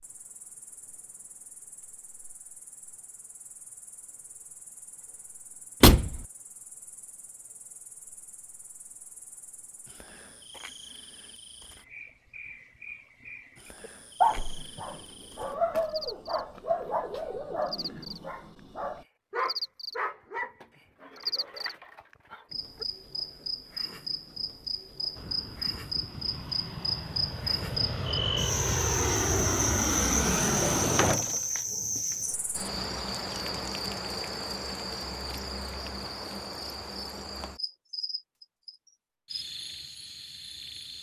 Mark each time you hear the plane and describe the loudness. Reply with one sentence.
You can hear the plane from 25.1 to 31.1 s, getting louder.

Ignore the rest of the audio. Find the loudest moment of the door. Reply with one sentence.
The loudest moment of the door is at 6 seconds.